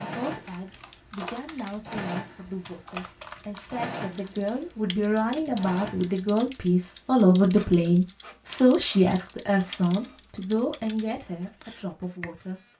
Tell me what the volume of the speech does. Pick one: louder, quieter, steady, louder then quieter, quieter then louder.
louder then quieter.